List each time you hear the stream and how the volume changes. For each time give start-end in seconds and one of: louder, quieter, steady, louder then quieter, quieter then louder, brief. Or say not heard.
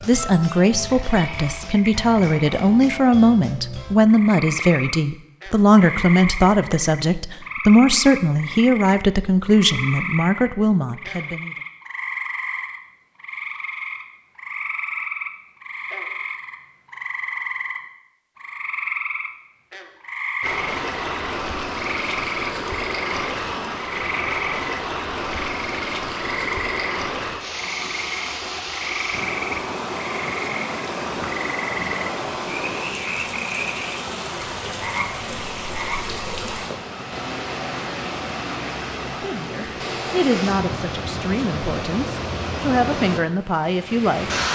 20.4-44.5 steady.